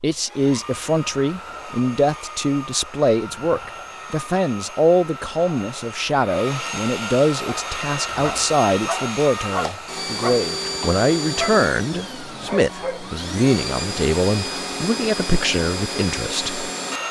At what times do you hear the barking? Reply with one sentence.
You can hear the barking from 7.5 to 13.1 s.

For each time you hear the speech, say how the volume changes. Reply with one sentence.
The speech can be heard from 0.0 to 17.0 s, at a steady volume.